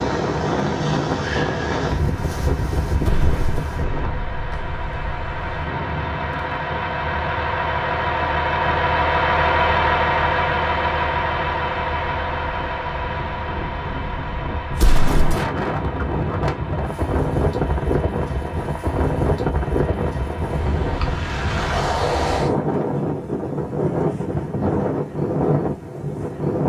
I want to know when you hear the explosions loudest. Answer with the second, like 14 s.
15 s.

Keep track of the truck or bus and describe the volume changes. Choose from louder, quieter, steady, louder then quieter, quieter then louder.
louder then quieter.